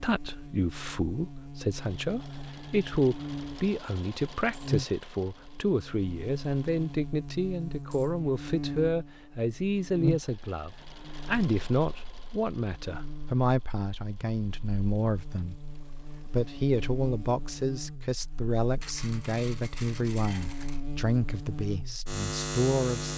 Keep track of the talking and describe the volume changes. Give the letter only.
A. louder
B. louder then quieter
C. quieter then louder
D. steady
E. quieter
D.